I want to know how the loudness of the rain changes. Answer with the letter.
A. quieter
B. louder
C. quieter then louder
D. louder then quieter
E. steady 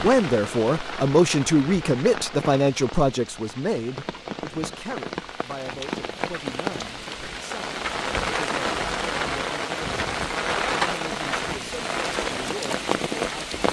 B.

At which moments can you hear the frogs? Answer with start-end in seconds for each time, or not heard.
not heard.